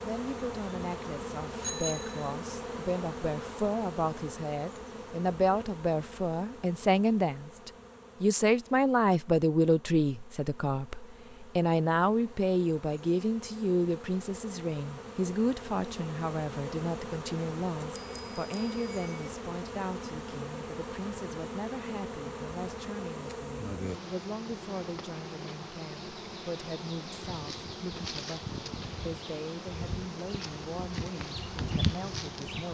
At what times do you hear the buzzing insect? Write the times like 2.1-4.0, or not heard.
0.0-32.7.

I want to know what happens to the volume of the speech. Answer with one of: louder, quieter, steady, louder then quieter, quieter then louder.
louder then quieter.